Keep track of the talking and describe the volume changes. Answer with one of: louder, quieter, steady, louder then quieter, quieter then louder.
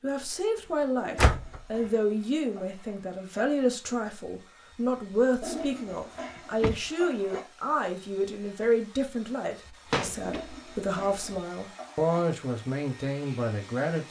steady.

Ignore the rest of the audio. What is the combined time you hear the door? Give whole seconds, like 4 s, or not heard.
3 s.